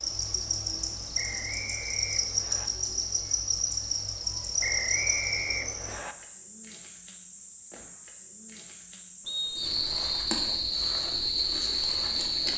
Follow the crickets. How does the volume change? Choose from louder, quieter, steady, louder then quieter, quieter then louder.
quieter then louder.